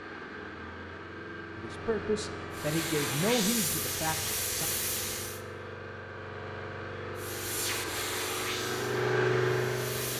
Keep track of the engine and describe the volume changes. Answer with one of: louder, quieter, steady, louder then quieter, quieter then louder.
louder.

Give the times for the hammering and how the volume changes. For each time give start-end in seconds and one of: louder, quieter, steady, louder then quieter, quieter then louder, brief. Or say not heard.
not heard.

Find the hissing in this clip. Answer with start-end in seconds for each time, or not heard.
2.5-5.4, 7.2-10.1.